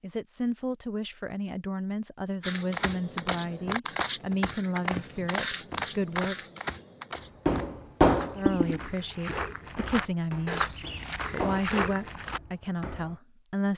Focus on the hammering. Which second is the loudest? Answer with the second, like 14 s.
8 s.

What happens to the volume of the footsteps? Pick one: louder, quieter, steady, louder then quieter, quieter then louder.
quieter then louder.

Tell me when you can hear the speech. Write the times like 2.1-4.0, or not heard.
0.0-6.5, 8.3-10.7, 11.3-13.7.